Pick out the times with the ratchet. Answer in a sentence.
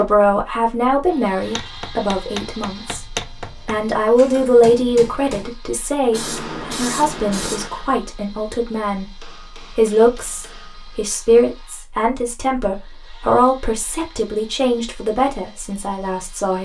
You can't hear the ratchet here.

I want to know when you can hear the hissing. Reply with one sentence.
The hissing can be heard from 6.1 to 7.7 s.